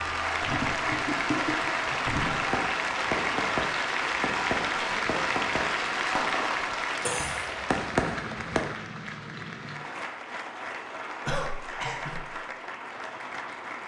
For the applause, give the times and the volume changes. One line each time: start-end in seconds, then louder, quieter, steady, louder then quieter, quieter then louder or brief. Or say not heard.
0.0-13.8 quieter.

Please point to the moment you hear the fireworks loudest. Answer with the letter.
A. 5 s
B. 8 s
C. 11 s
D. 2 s
B.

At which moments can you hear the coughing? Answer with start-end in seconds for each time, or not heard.
0.4-2.5, 7.0-7.5, 11.2-12.2.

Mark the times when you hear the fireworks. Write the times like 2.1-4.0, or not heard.
2.2-8.7.